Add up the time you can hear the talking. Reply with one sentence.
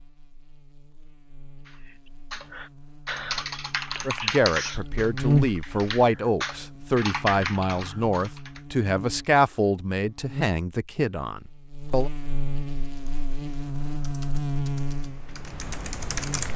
You can hear the talking for 8 seconds altogether.